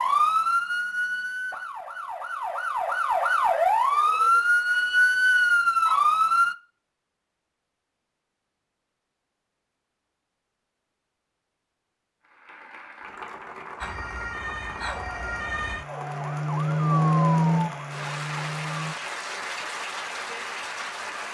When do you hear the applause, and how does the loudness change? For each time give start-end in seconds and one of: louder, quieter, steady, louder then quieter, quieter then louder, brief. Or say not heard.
12.2-21.2 louder.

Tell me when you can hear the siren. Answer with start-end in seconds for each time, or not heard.
0.0-6.5, 13.8-18.9.